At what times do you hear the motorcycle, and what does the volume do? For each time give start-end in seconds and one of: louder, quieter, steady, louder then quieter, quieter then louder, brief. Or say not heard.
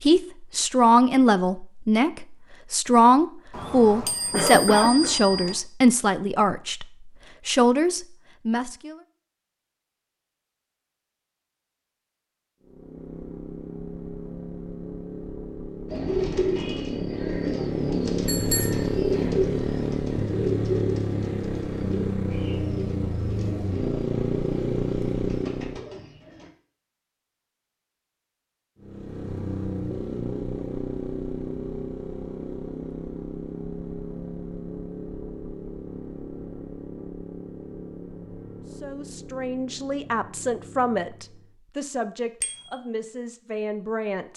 12.6-25.9 louder
28.8-41.5 quieter.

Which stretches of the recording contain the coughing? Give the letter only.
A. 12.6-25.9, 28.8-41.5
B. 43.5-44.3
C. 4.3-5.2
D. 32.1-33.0
C.